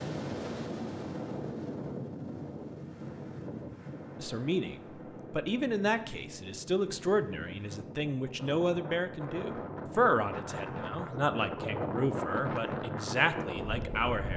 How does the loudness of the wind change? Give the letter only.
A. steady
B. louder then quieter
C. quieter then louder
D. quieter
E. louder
C.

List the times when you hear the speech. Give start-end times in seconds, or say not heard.
4.2-14.3.